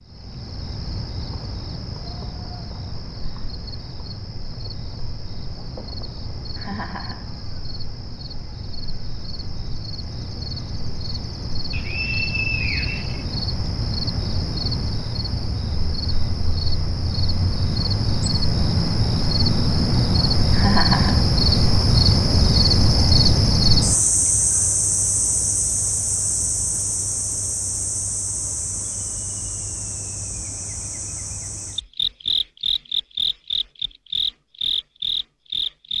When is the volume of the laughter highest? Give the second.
21 s.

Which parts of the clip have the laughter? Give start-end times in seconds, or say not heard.
6.5-7.3, 20.5-21.2.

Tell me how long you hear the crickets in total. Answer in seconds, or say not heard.
36 s.